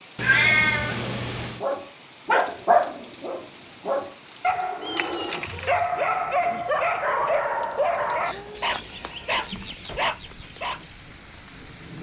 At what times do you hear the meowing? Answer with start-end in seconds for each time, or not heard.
0.1-1.6, 4.8-5.8, 8.2-10.2.